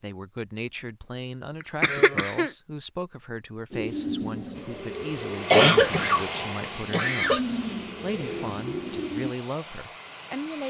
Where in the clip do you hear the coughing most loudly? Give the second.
6 s.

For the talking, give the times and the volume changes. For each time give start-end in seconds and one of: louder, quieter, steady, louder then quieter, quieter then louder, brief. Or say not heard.
0.0-7.4 steady
8.0-10.6 brief.